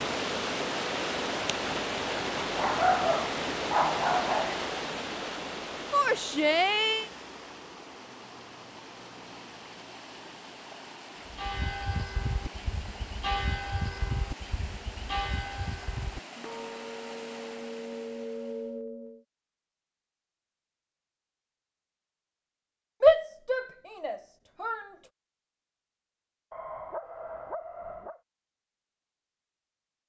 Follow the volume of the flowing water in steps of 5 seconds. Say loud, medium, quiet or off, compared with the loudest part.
loud, medium, quiet, quiet, off, off.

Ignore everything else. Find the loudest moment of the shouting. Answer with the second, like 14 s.
23 s.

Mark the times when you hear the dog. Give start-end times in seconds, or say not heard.
2.5-4.5, 26.5-28.2.